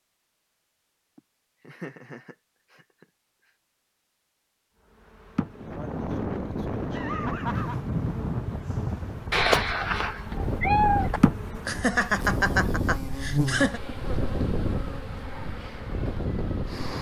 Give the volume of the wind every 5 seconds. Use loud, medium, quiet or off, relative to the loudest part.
off, loud, loud, loud.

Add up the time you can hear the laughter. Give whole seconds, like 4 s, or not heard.
5 s.